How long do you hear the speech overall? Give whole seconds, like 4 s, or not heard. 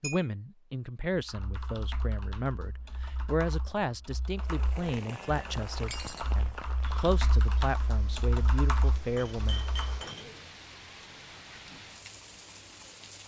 10 s.